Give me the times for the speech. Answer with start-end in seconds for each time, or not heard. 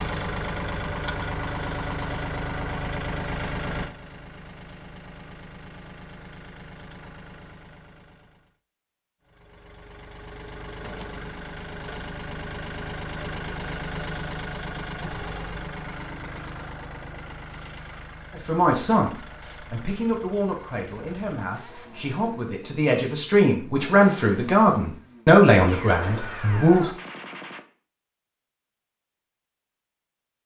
18.4-26.9.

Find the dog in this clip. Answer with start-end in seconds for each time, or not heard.
not heard.